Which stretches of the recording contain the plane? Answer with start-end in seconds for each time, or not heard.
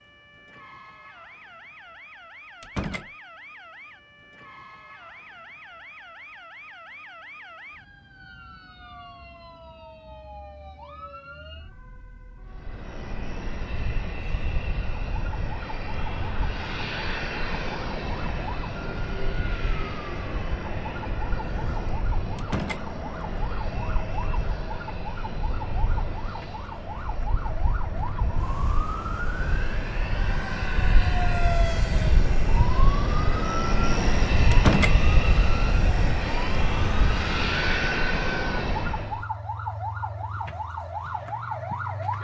12.4-39.2.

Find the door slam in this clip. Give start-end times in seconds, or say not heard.
2.6-3.1, 22.4-22.9, 34.5-35.0.